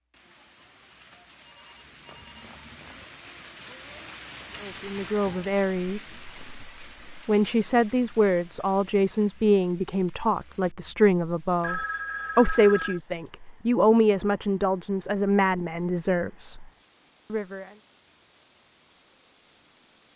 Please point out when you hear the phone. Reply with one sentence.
You can hear the phone from 1.4 to 3.0 s and from 11.6 to 13.0 s.